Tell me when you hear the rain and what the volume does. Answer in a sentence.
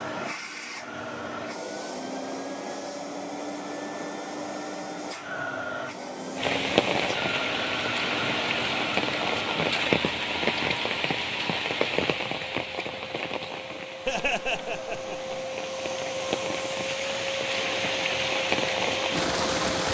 The rain can be heard from 6.3 to 19.8 s, getting quieter then louder.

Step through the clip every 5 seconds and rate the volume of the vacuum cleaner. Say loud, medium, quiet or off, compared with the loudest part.
loud, loud, medium, loud.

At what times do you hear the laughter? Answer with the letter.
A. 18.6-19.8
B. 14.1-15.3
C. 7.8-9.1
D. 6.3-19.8
B.